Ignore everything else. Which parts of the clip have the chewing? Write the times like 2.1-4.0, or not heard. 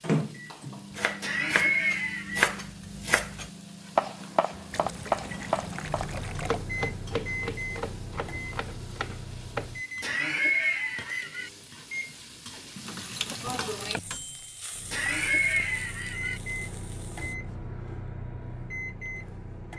not heard.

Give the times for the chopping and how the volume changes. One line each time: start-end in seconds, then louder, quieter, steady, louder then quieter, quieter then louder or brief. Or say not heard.
0.9-9.7 quieter.